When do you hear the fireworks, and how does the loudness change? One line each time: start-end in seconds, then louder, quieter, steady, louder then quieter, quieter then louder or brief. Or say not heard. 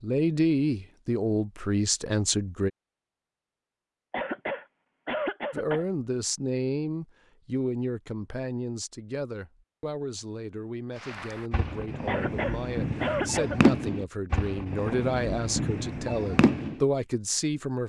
11.0-16.8 louder then quieter.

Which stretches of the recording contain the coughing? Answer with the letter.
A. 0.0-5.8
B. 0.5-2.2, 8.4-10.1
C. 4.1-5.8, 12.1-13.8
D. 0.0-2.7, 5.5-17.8
C.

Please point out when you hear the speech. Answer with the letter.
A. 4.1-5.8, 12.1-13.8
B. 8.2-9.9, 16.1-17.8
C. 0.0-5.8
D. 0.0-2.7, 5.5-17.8
D.